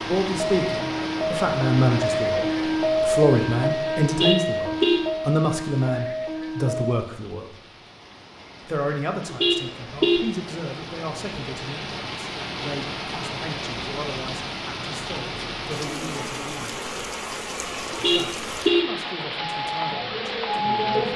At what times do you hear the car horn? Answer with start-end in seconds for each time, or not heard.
4.0-5.0, 9.2-10.2, 17.9-18.9.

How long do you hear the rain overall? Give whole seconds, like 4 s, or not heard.
21 s.